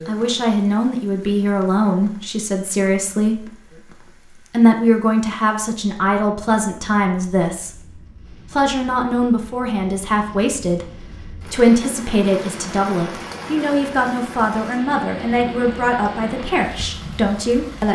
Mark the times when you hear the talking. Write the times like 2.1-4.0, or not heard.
0.0-17.8.